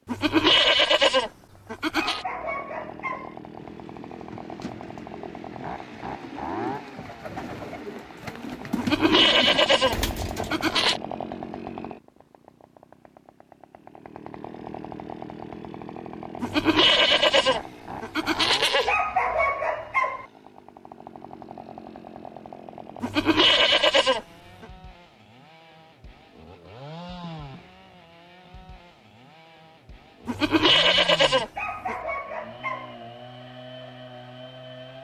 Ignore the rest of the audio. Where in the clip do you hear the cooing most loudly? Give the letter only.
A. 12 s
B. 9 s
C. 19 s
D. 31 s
B.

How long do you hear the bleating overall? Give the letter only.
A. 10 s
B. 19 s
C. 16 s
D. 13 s
A.